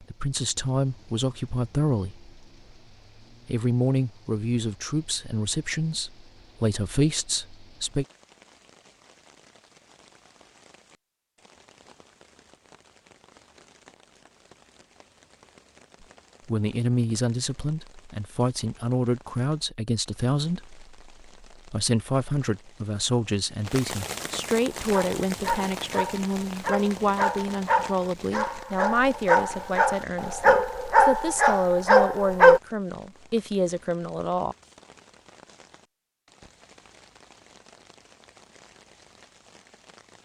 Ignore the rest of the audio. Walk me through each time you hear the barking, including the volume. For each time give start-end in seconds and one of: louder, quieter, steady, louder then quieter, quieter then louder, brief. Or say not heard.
24.9-32.6 louder.